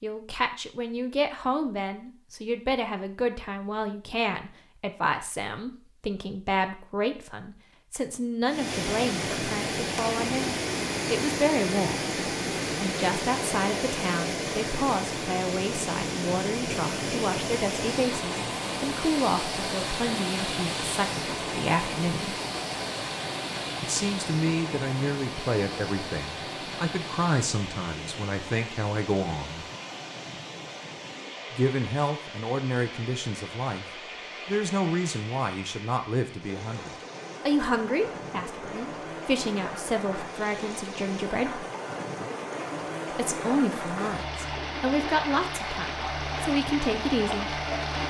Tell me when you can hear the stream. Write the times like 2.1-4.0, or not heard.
8.4-48.0.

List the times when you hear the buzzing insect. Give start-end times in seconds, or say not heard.
not heard.